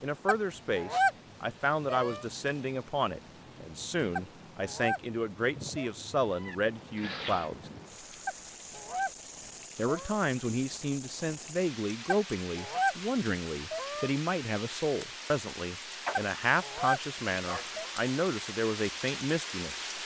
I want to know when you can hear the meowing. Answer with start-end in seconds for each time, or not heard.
6.2-7.5.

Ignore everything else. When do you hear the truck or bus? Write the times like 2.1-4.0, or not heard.
not heard.